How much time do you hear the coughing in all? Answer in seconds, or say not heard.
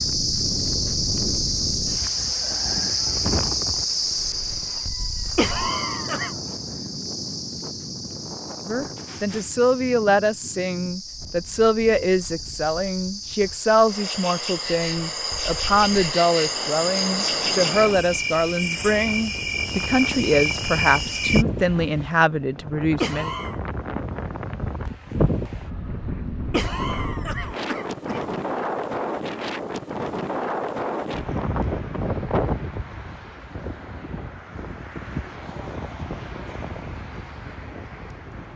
3 s.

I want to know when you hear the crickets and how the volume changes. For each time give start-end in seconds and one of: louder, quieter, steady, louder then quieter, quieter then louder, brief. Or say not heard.
0.0-21.4 quieter then louder.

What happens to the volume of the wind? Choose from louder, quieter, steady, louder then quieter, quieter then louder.
quieter then louder.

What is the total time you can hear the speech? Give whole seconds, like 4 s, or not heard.
15 s.